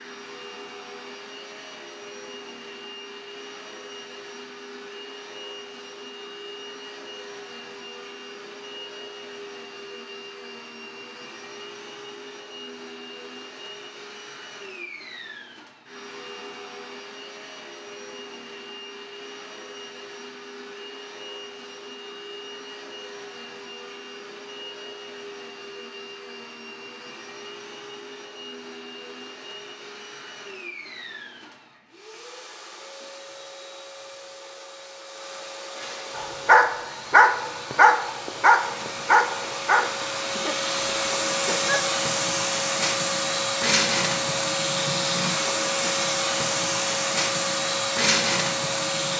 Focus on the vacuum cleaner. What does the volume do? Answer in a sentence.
The loudness of the vacuum cleaner goes up.